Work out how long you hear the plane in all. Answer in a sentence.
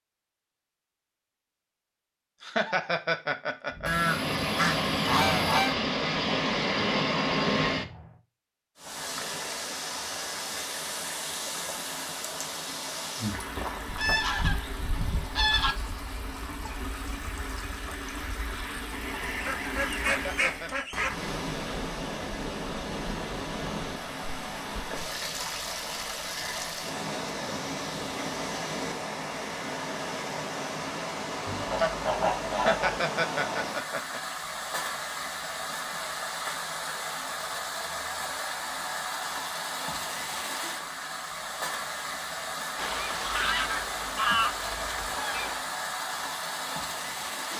The plane can be heard for 4 seconds in total.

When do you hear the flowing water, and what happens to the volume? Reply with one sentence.
You can hear the flowing water from 8.8 to 47.5 s, at a steady volume.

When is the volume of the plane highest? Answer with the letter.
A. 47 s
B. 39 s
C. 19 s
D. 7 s
D.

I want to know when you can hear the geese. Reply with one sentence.
The geese can be heard from 3.9 to 5.8 s, from 13.8 to 15.8 s, from 19.2 to 21.1 s, from 31.4 to 33.0 s and from 42.8 to 45.6 s.